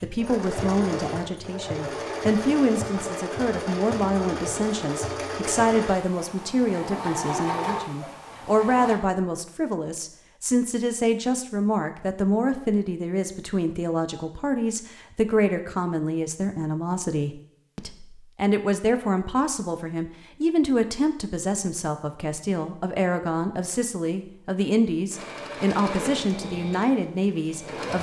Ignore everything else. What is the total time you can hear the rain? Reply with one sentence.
You can't hear the rain here.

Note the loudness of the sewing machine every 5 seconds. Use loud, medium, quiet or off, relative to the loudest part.
loud, loud, off, off, off, loud.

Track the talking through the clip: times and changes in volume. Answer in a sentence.
You can hear the talking from 0.0 to 27.9 s, at a steady volume.